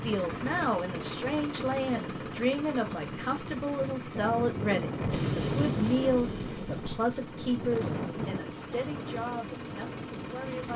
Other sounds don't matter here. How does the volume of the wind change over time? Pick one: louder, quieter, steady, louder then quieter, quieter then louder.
louder then quieter.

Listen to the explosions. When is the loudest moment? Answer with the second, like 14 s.
5 s.